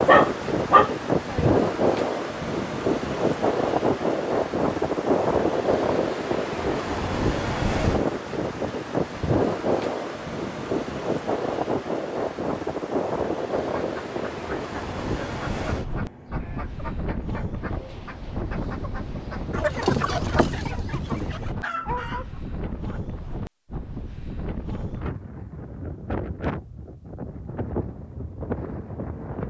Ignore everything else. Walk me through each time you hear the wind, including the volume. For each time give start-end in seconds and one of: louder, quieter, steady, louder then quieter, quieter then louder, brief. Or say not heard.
0.0-29.4 quieter.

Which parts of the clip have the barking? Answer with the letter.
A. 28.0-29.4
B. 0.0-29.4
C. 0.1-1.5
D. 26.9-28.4
C.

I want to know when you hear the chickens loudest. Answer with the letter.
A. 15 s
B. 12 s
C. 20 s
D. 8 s
C.